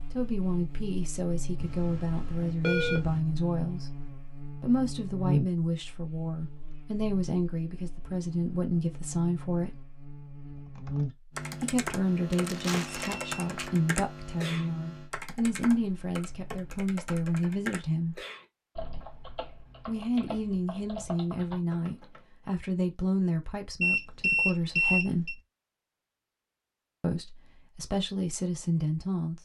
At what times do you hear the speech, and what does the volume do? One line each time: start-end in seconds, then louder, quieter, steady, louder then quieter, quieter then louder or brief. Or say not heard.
0.1-9.8 steady
11.6-18.2 steady
19.9-25.4 steady
27.0-29.3 brief.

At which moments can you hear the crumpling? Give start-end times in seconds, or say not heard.
12.3-13.7.